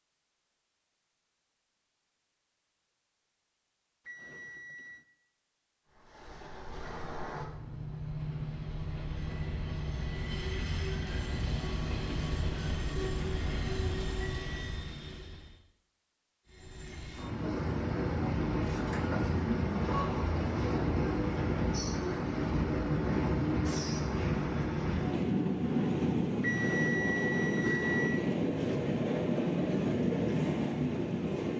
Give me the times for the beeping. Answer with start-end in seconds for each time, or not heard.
4.0-5.0, 14.2-14.8, 26.4-28.2.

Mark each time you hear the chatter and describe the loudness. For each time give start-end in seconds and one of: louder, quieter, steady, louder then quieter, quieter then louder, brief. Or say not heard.
not heard.